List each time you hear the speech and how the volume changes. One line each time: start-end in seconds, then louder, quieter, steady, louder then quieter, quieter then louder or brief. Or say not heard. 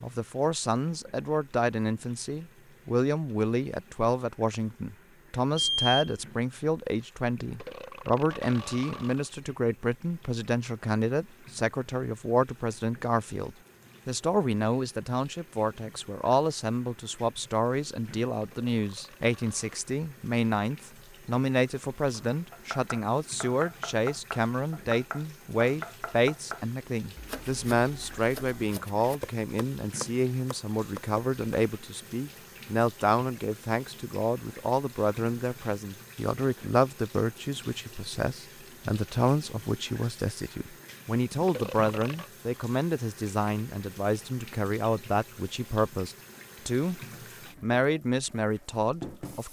0.0-47.0 steady
47.6-49.4 brief.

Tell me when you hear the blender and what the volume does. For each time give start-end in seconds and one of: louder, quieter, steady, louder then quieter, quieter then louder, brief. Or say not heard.
not heard.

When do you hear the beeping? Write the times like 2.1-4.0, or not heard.
5.5-6.2.